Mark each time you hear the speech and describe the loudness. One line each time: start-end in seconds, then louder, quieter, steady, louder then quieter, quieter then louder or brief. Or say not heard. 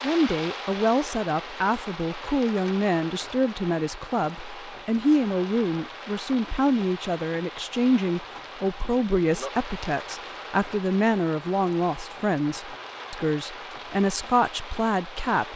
0.0-15.5 steady.